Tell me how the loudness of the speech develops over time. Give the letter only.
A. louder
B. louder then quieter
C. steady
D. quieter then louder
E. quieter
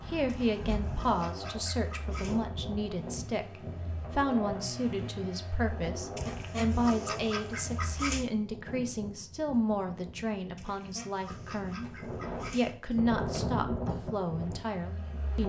C.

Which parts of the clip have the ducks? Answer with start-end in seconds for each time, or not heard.
0.2-2.5, 6.2-8.3, 10.6-12.8.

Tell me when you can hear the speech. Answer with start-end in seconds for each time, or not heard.
0.1-15.4.